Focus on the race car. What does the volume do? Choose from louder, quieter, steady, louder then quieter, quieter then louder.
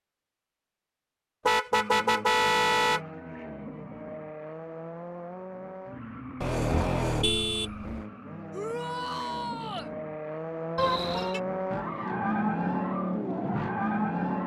louder.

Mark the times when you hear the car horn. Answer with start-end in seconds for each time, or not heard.
1.4-3.0, 6.4-8.1, 10.8-11.4.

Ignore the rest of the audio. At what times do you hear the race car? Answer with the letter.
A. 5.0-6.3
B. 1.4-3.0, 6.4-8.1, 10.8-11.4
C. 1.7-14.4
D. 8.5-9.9
C.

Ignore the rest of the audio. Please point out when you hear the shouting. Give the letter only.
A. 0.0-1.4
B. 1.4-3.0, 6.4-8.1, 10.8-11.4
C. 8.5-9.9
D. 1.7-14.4
C.